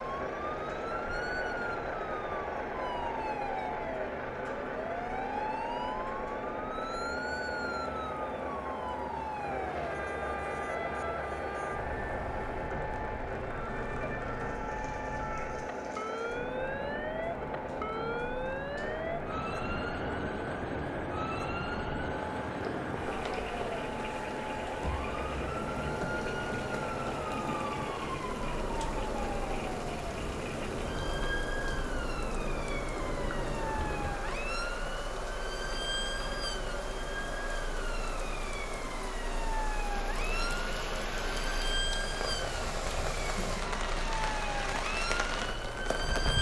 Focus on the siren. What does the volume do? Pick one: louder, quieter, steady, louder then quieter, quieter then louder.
steady.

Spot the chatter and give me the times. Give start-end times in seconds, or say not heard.
not heard.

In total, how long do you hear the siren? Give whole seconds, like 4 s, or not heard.
46 s.